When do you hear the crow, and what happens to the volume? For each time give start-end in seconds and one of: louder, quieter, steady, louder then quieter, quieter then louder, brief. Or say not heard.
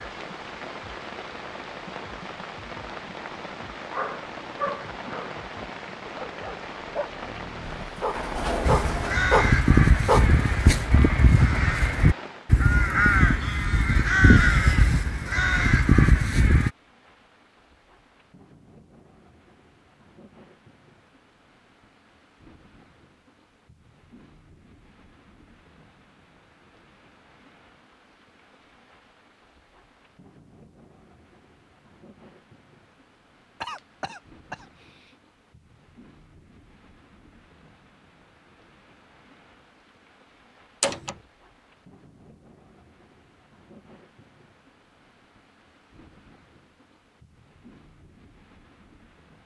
8.7-16.7 steady.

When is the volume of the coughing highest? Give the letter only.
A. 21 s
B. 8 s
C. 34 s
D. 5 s
C.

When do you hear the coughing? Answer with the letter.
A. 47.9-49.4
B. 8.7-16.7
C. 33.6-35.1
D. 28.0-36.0
C.